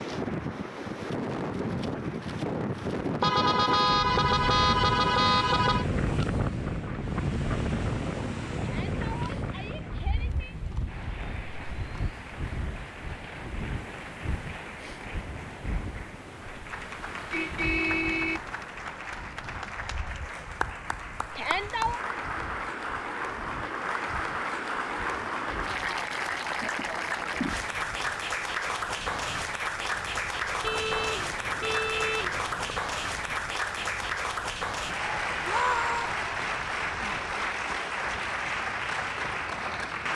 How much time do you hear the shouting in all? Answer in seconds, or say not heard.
3 s.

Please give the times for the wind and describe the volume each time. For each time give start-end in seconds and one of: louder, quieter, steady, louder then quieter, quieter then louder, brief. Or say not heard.
0.0-40.1 quieter.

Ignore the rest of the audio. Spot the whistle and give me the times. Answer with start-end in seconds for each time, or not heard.
not heard.